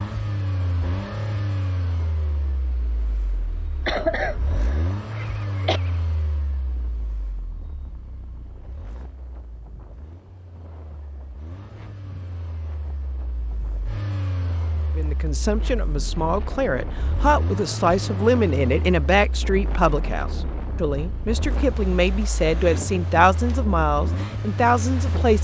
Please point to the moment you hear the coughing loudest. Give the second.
4 s.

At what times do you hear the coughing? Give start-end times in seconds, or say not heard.
3.9-5.8.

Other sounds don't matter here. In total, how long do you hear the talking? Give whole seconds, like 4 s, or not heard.
10 s.